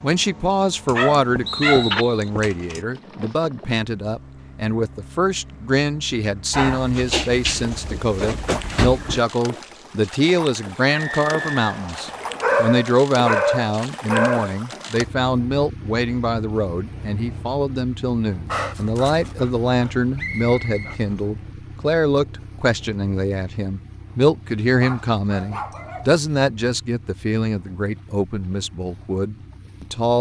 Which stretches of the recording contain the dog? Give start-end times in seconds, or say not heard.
0.8-2.8, 6.5-9.2, 12.2-14.6, 18.4-21.2, 24.6-26.1.